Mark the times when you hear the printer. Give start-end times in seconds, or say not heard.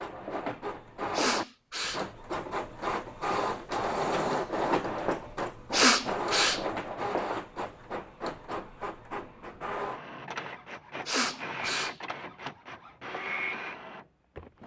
0.0-14.6.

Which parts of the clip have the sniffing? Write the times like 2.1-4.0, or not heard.
1.1-2.0, 5.7-6.6, 11.1-11.9.